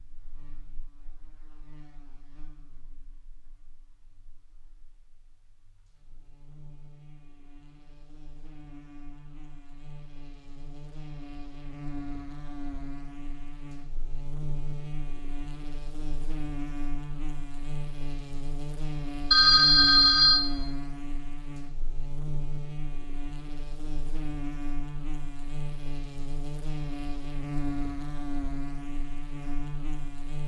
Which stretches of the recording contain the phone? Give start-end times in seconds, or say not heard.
19.3-20.4.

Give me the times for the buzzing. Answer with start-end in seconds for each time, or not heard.
0.0-30.4.